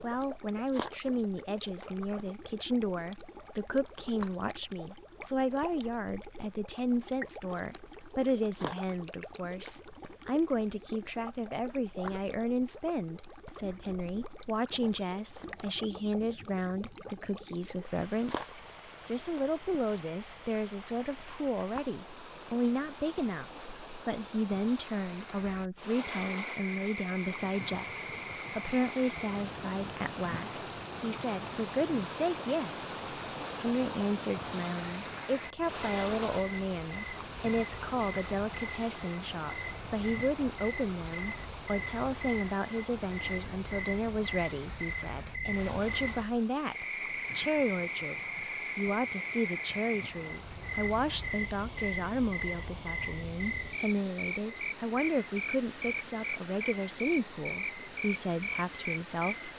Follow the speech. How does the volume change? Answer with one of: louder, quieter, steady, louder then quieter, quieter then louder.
steady.